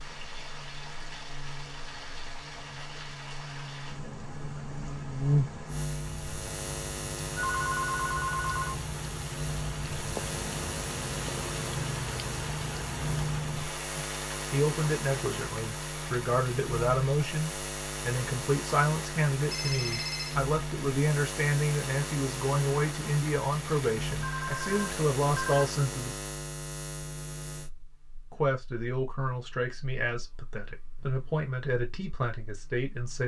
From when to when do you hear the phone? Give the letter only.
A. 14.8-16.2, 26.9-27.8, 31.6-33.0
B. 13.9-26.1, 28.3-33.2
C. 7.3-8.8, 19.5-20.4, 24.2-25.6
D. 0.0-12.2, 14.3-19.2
C.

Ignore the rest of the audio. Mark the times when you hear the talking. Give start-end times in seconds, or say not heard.
13.9-26.1, 28.3-33.2.